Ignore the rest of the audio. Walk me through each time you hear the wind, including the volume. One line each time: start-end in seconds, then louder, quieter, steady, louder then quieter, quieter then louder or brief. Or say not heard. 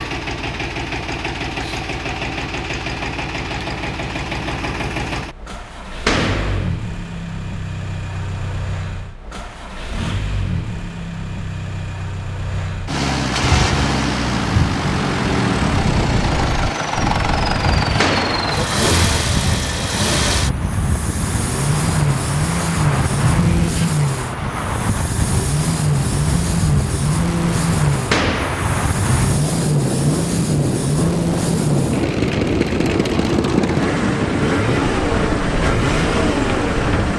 13.4-37.1 steady.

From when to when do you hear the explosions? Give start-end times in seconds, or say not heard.
6.0-6.7, 18.0-18.6, 28.1-28.8.